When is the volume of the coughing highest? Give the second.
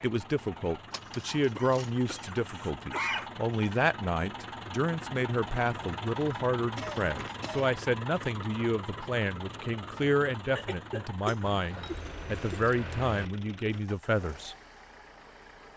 3 s.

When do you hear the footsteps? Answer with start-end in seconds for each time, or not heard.
not heard.